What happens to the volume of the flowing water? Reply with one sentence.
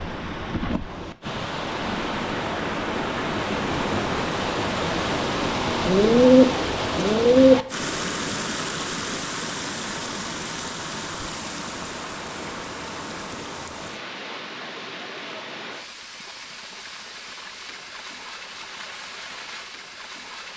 The volume of the flowing water goes down.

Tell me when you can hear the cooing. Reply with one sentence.
You can hear the cooing from 5.8 to 7.6 s.